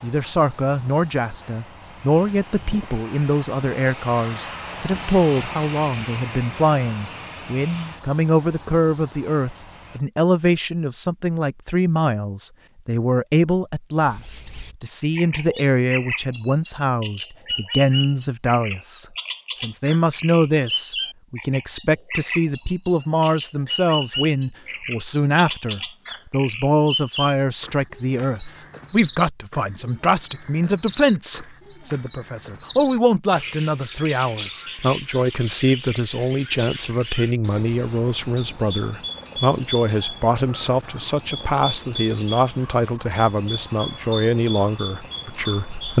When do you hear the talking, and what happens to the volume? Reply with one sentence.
The talking can be heard from 0.0 to 45.9 s, at a steady volume.